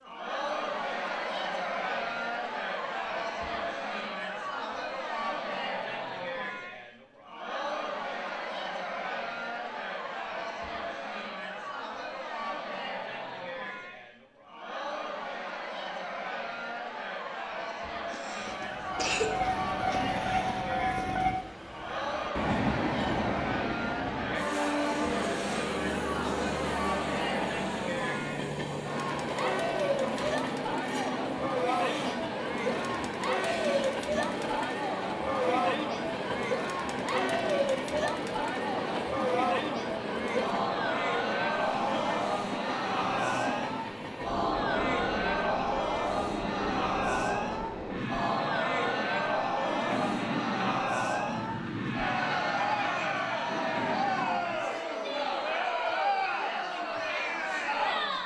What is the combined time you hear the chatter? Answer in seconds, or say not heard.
58 s.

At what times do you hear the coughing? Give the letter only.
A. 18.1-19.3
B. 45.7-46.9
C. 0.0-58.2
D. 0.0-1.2
A.